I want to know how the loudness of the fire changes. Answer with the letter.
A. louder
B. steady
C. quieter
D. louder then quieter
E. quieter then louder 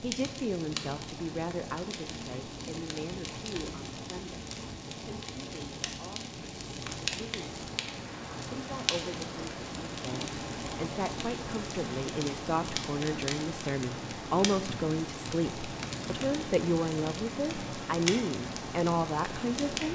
B.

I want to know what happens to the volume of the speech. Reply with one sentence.
The volume of the speech goes down, then up.